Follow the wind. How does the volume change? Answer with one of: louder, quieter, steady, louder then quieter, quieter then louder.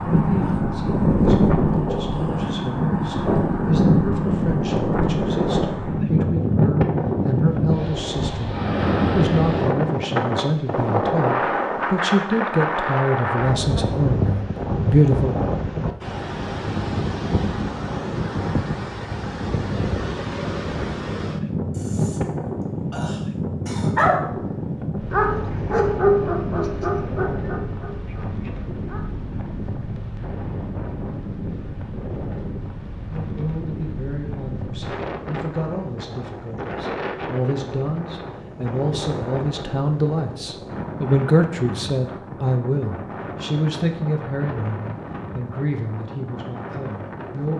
quieter.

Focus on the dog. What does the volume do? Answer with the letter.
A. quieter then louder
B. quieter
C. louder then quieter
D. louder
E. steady
B.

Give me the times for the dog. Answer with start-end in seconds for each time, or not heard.
23.9-29.1.